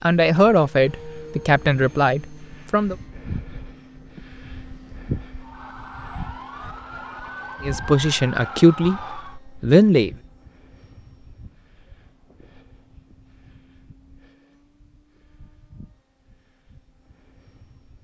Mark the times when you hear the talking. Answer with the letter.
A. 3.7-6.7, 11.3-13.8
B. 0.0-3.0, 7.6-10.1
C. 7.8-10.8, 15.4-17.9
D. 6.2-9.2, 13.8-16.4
B.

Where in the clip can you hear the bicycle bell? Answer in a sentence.
You can't hear the bicycle bell here.